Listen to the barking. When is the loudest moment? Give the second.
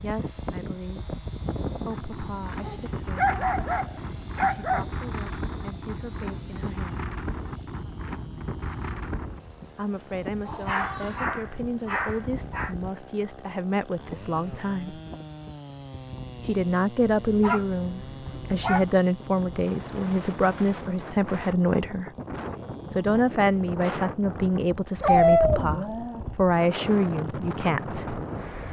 25 s.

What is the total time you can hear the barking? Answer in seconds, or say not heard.
7 s.